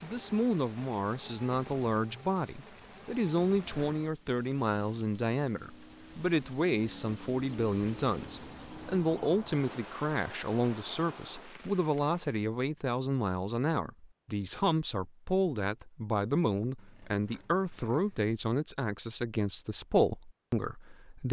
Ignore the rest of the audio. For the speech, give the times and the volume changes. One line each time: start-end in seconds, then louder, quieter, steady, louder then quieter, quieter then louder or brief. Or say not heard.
0.0-21.2 steady.